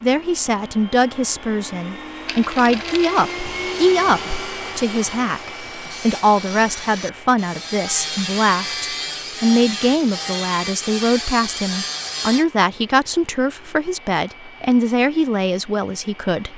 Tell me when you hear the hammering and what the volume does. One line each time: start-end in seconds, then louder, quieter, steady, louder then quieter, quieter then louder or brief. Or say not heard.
not heard.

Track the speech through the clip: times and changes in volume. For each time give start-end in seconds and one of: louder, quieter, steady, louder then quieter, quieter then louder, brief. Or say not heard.
0.0-16.5 steady.